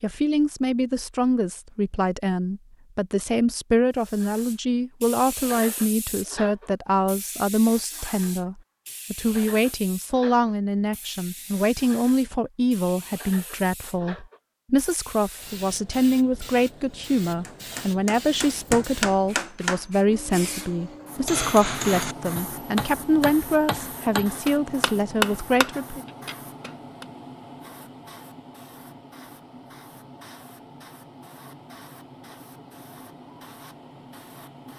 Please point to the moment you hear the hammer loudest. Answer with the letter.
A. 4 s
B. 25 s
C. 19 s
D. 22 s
B.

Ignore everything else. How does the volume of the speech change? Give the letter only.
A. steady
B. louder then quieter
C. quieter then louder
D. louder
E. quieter
A.